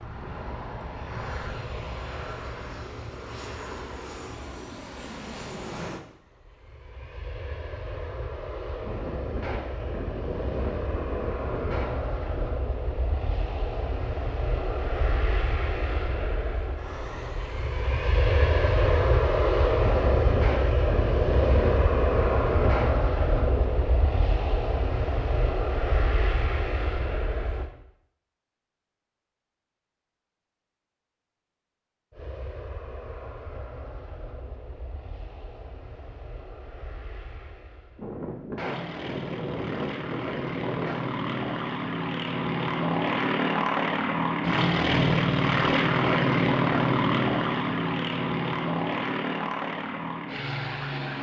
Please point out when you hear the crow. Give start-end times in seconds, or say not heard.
not heard.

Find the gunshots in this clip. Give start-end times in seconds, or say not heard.
8.8-12.6, 19.8-23.8, 38.0-41.0.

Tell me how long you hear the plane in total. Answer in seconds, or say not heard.
47 s.